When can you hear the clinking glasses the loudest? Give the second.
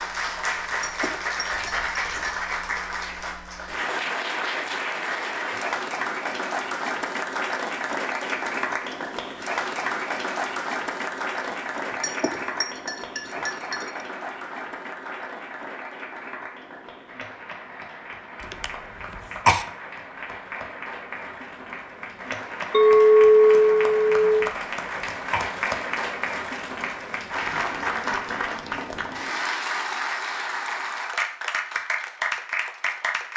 23 s.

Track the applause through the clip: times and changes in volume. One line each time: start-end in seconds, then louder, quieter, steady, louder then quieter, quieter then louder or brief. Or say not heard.
0.0-33.3 quieter then louder.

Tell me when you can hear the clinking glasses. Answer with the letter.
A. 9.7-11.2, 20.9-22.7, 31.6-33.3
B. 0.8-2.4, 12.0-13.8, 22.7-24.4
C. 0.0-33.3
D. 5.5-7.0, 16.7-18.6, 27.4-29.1
B.